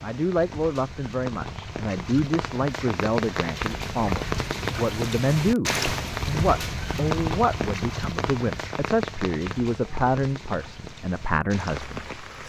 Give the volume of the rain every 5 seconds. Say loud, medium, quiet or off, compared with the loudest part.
loud, loud, medium.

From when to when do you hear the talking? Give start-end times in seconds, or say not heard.
0.0-12.2.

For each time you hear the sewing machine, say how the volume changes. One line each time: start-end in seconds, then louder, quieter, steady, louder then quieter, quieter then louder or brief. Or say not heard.
not heard.